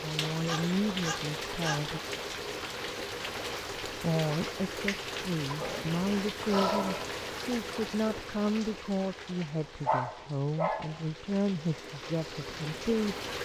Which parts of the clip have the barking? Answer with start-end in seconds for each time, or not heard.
0.5-1.8, 5.6-7.2, 9.8-11.0.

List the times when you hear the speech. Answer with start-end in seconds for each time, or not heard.
0.0-2.0, 3.9-13.2.